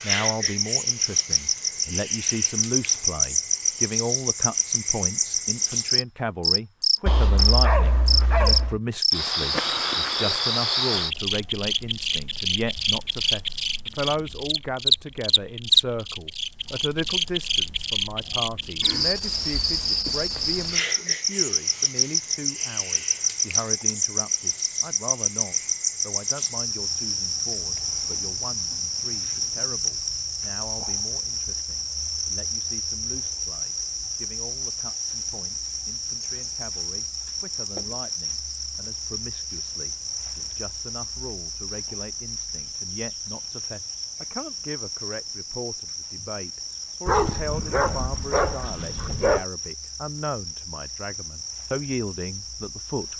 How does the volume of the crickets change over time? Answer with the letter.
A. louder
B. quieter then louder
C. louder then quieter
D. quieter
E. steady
D.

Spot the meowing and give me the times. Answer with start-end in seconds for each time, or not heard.
not heard.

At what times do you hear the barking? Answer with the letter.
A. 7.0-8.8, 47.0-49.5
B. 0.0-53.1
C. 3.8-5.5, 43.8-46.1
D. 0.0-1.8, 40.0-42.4
A.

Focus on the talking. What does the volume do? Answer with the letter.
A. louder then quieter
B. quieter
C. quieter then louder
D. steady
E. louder
C.